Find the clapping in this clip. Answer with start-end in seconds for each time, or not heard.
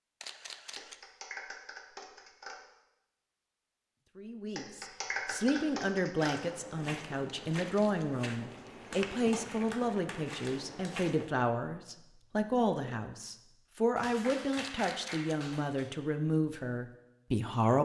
0.8-2.5, 4.5-6.3, 8.9-10.9, 13.9-15.9.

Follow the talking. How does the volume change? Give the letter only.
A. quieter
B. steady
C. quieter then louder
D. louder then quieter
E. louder
B.